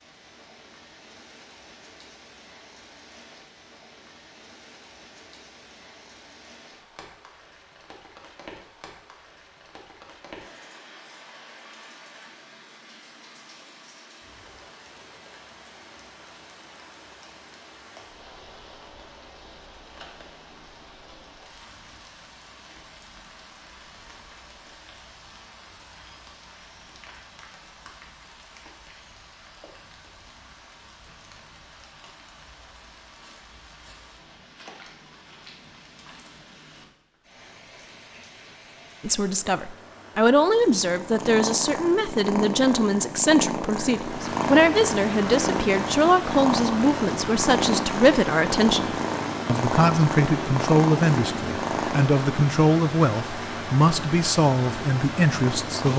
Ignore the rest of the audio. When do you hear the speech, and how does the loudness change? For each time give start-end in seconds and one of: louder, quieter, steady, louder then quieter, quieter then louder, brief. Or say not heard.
39.0-55.9 steady.